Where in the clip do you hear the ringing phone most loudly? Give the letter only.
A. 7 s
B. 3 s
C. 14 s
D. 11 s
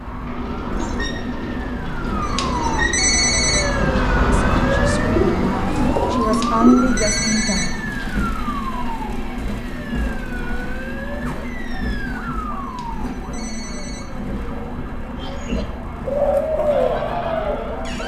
B.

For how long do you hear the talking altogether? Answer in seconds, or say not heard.
4 s.